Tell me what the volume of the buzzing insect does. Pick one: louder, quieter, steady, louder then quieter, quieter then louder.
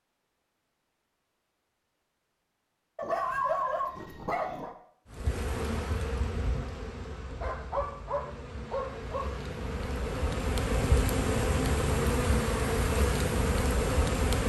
quieter then louder.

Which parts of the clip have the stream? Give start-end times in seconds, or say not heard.
not heard.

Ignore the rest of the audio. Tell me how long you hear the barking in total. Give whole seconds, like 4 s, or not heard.
4 s.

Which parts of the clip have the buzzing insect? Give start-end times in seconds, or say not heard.
5.1-14.4.